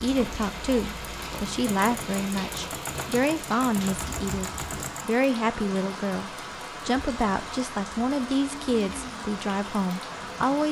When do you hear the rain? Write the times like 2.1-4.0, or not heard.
0.0-10.6.